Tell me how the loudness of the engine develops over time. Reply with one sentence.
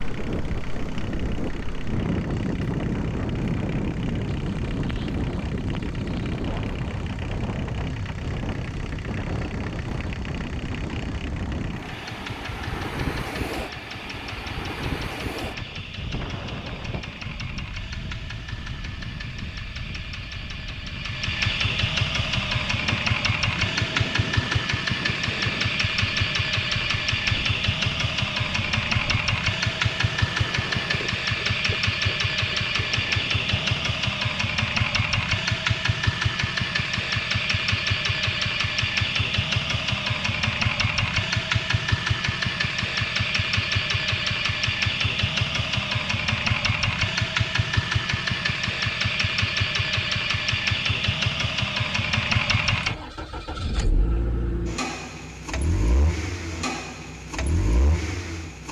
The volume of the engine goes up.